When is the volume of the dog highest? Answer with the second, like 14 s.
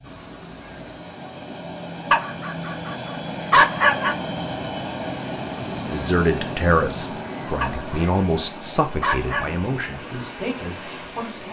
4 s.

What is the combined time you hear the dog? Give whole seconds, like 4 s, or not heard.
4 s.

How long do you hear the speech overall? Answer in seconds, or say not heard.
6 s.